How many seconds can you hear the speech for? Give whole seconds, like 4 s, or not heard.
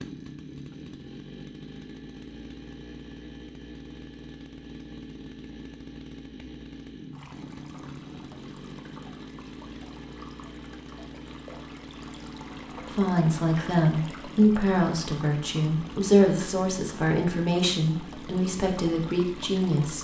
7 s.